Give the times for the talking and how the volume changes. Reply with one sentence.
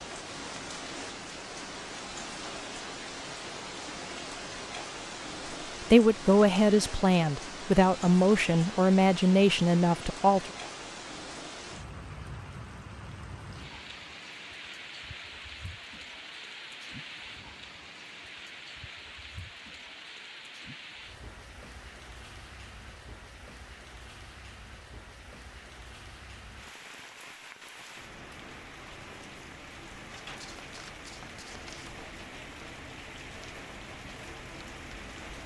The talking can be heard from 5.9 to 10.5 s, at a steady volume.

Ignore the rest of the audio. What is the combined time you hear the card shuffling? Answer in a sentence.
The card shuffling can be heard for 2 seconds in total.